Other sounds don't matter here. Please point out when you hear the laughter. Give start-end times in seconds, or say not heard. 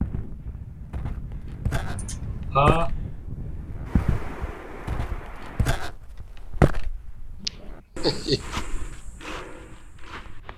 1.9-2.9, 7.4-8.4.